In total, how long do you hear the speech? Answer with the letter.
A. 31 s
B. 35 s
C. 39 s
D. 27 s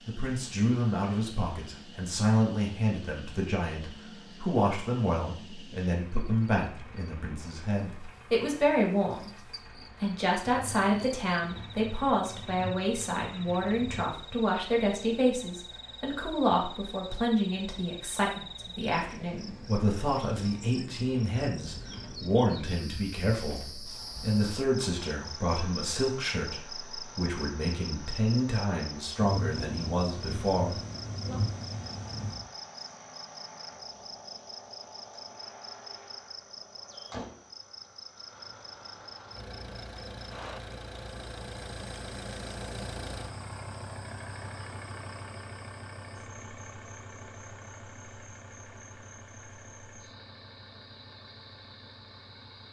A.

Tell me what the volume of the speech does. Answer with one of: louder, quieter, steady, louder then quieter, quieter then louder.
steady.